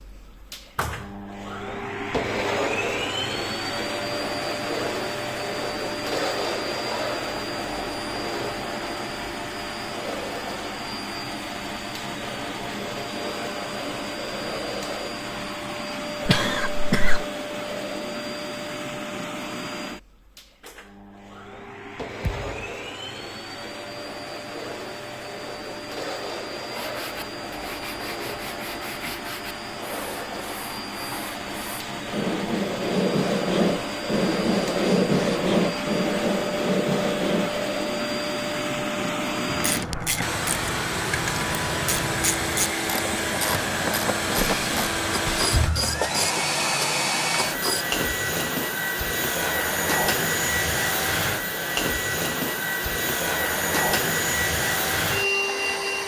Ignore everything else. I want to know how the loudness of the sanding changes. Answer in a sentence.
The loudness of the sanding goes up.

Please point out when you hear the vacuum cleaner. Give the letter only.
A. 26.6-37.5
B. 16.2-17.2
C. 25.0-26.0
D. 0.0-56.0
D.